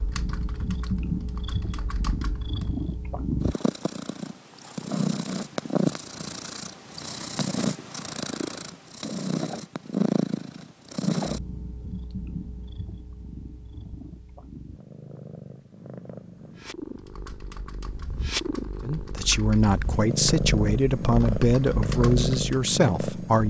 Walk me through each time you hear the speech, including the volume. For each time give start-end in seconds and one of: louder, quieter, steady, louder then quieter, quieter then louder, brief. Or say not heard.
18.8-23.4 steady.